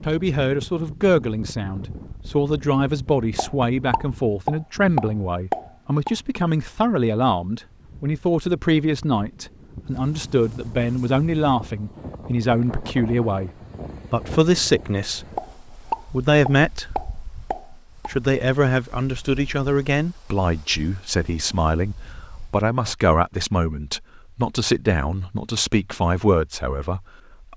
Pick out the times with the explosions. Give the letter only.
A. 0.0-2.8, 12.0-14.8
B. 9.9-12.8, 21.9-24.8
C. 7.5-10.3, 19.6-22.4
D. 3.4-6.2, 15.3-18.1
D.